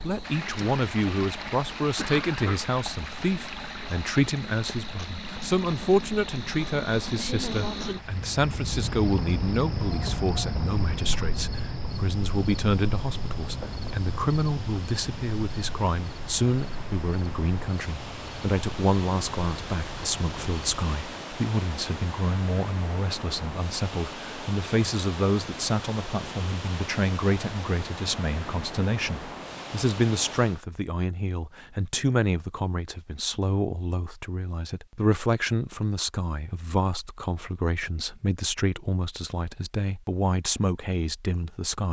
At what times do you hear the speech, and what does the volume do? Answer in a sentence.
The speech can be heard from 0.0 to 41.8 s, at a steady volume.